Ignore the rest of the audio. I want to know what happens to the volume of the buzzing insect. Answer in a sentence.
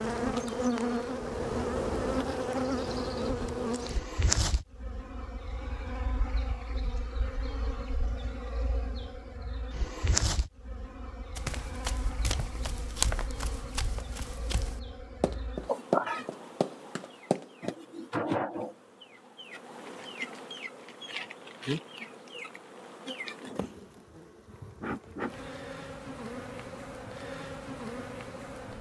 The loudness of the buzzing insect goes down.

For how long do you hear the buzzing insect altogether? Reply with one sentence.
You can hear the buzzing insect for 29 seconds altogether.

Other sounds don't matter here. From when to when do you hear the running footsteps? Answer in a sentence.
The running footsteps can be heard from 11.3 to 17.8 s.